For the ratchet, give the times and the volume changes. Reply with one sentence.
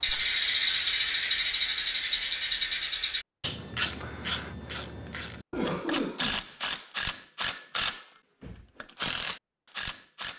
You can hear the ratchet from 0.0 to 10.3 s, getting quieter.